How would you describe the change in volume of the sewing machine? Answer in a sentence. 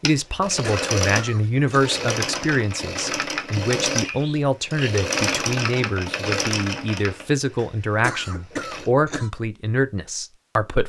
The loudness of the sewing machine goes down.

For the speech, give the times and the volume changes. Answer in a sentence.
You can hear the speech from 0.0 to 10.8 s, at a steady volume.